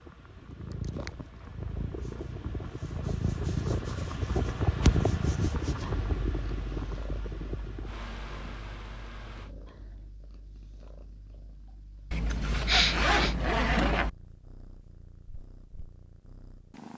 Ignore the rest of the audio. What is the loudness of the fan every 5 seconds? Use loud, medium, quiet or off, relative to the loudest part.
loud, loud, off, off.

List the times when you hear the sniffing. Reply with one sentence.
The sniffing can be heard from 12.5 to 13.3 s.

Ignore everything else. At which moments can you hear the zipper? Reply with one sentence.
You can hear the zipper from 12.1 to 14.1 s.